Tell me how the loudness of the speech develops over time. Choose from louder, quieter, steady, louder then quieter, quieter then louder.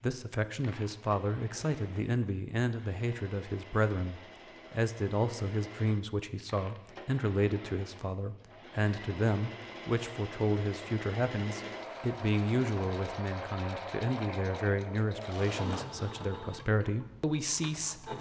steady.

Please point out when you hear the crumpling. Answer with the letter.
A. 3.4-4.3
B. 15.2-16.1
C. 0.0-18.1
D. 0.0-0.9
B.